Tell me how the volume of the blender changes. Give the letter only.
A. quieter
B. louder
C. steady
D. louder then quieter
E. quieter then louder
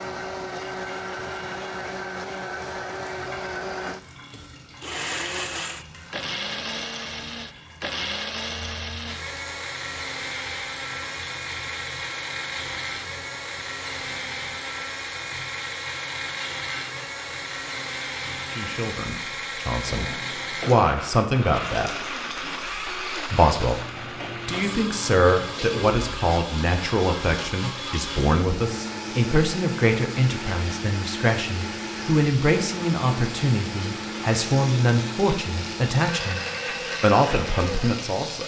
C.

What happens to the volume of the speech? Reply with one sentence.
The loudness of the speech stays about the same.